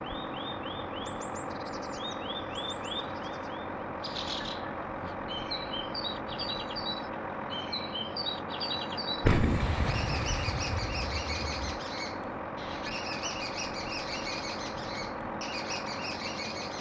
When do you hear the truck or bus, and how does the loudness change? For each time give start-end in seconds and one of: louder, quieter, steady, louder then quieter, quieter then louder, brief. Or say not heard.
0.0-16.7 steady.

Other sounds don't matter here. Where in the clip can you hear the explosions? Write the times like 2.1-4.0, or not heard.
9.2-11.8.